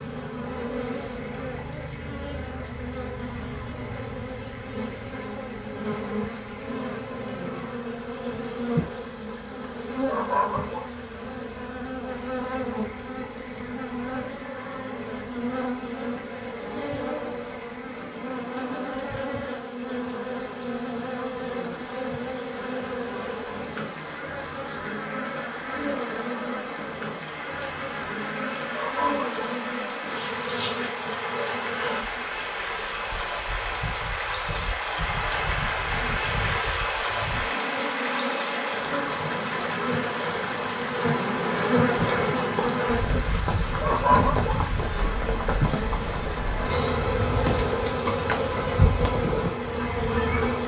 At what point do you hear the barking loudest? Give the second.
44 s.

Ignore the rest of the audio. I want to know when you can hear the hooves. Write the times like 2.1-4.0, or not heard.
42.0-49.5.